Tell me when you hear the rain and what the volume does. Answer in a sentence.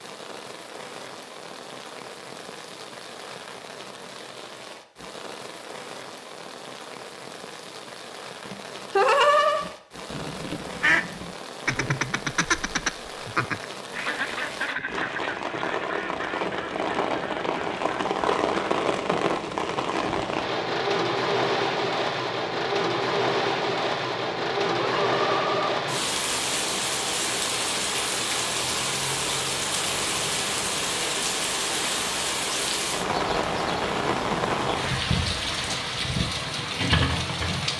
The rain can be heard from 0.0 to 37.7 s, getting louder.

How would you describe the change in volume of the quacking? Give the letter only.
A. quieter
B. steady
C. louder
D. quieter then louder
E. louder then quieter
A.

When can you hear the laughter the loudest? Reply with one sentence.
The volume of the laughter peaks at 9 seconds.